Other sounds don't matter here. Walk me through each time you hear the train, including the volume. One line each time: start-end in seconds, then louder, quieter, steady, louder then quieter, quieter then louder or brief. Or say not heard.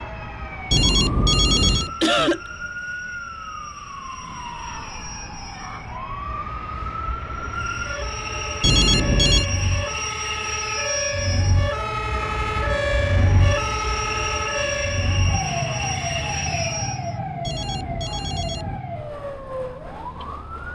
0.0-17.1 louder.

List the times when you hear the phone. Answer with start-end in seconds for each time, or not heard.
0.7-1.9, 8.6-9.4, 17.4-18.8.